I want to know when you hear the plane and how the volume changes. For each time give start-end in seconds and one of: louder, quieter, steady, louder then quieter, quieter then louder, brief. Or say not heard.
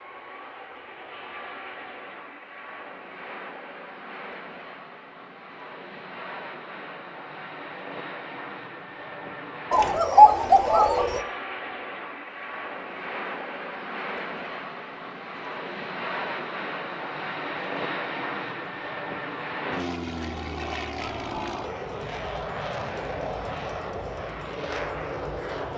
0.0-25.7 louder.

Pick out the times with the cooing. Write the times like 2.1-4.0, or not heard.
9.7-11.2.